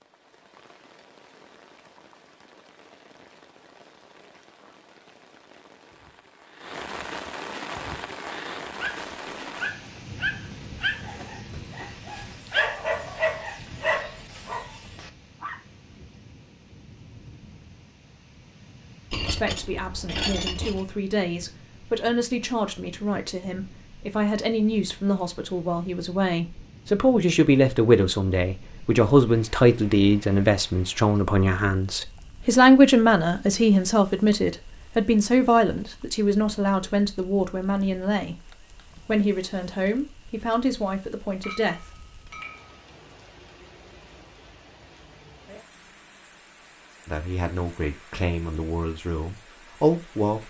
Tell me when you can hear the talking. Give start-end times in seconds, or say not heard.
19.3-38.4, 39.0-41.9, 47.0-50.4.